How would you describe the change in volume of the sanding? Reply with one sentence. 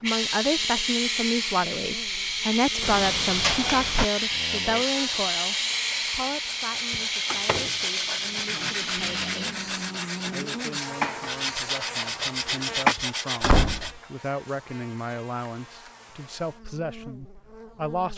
The loudness of the sanding goes up.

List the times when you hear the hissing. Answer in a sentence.
You can hear the hissing from 0.0 to 12.9 s.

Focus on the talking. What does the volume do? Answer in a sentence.
The loudness of the talking goes down, then up.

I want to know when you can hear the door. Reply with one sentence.
The door can be heard from 2.8 to 4.0 s, from 6.9 to 7.7 s and from 12.9 to 14.0 s.